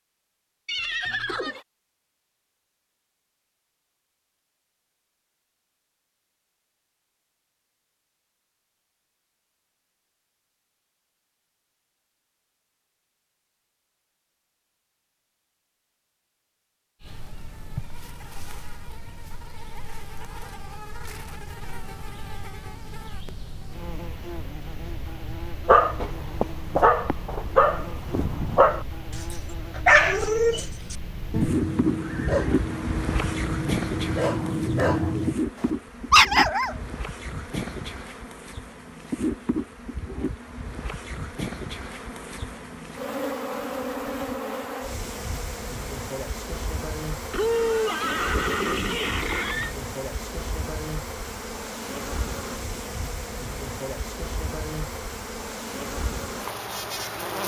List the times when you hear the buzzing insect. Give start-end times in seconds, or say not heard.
17.0-57.4.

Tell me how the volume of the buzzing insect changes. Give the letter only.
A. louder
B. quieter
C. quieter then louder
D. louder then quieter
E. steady
A.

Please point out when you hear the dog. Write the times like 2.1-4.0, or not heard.
25.6-35.4, 36.1-36.8.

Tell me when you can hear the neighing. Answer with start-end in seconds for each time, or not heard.
0.7-1.6, 32.0-32.5, 47.3-49.8.